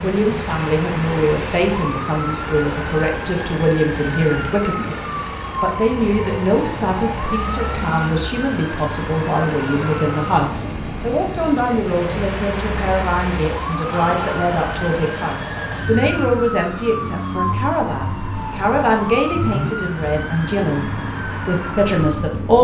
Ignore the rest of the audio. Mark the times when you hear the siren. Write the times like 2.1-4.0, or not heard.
0.0-22.5.